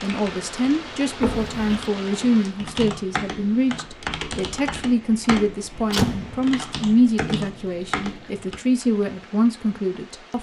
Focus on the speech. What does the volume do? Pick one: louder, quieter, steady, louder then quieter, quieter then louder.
steady.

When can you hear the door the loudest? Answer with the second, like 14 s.
6 s.